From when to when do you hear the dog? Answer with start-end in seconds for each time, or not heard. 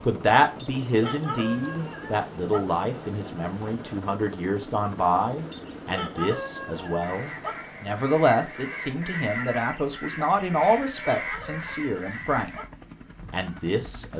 0.6-2.6, 5.5-7.5, 10.6-12.7.